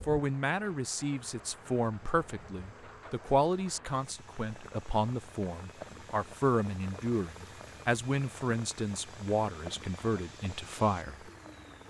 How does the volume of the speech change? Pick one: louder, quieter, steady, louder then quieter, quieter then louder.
steady.